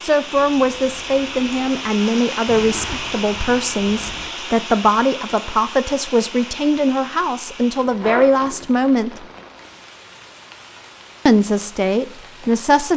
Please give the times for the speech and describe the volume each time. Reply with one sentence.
You can hear the speech from 0.0 to 9.2 s, at a steady volume; and briefly from 11.2 to 12.9 s.